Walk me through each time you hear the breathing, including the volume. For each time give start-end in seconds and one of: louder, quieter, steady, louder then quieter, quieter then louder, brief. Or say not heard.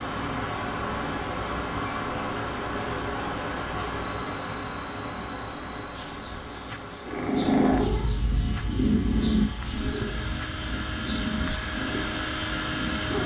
not heard.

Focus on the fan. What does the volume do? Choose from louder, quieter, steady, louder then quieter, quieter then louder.
quieter then louder.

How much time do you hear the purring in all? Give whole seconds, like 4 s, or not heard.
6 s.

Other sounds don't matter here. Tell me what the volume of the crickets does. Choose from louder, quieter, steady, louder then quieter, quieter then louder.
louder.